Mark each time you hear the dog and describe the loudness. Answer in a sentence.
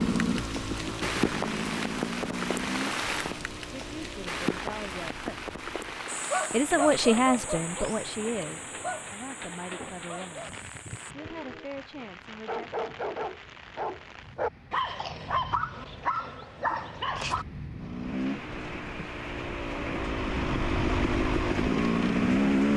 The dog can be heard from 6.1 to 17.4 s, getting quieter then louder.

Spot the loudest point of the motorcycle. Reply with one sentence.
The loudest moment of the motorcycle is at 22 seconds.